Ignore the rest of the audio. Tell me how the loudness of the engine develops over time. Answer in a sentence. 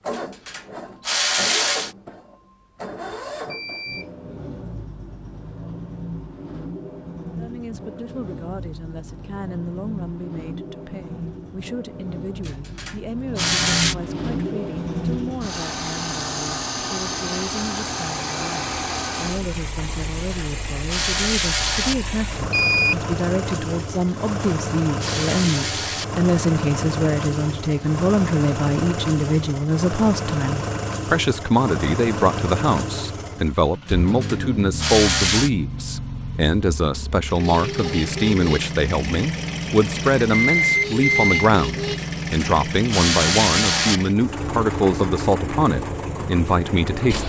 The volume of the engine goes up.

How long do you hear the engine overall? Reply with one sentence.
You can hear the engine for 47 seconds altogether.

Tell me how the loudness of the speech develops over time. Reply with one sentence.
The volume of the speech goes up.